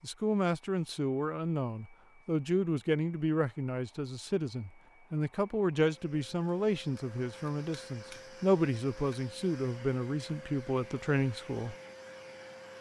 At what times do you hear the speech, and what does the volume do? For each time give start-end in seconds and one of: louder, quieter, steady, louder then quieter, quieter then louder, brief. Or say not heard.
0.0-11.8 steady.